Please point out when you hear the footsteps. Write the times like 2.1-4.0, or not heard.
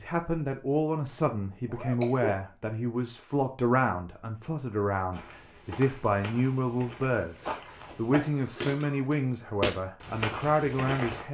5.1-11.2.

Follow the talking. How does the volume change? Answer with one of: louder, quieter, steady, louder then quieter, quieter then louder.
steady.